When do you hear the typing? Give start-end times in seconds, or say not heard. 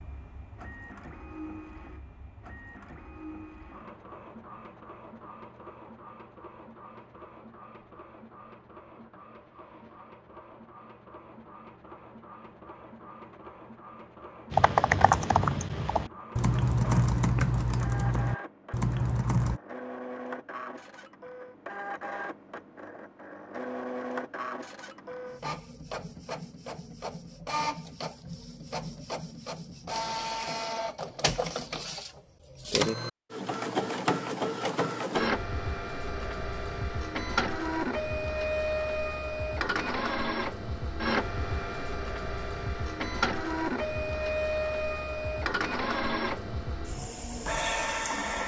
14.5-19.6.